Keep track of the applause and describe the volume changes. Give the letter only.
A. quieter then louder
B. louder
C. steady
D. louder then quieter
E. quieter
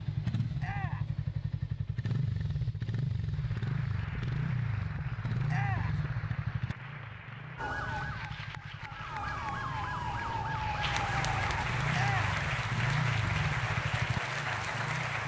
B.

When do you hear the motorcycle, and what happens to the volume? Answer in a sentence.
You can hear the motorcycle from 0.0 to 15.2 s, getting quieter then louder.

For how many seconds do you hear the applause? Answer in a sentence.
You can hear the applause for 12 seconds altogether.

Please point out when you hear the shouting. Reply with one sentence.
You can hear the shouting from 0.6 to 1.1 s, from 5.5 to 6.0 s and from 11.9 to 12.3 s.